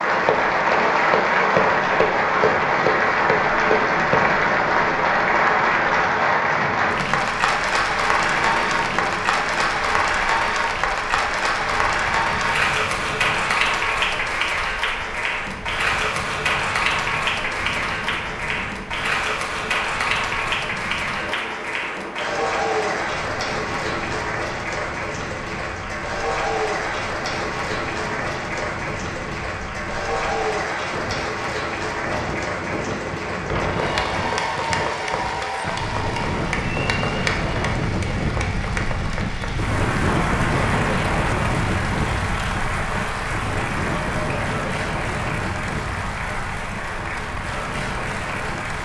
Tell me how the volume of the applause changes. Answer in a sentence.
The volume of the applause goes down.